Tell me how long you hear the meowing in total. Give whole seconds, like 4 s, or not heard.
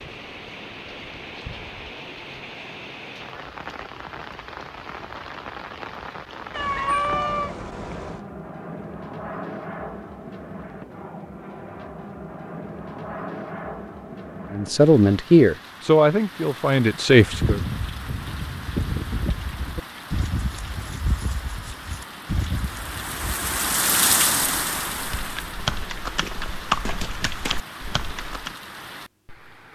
2 s.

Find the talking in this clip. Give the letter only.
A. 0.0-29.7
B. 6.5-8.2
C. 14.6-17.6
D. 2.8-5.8
C.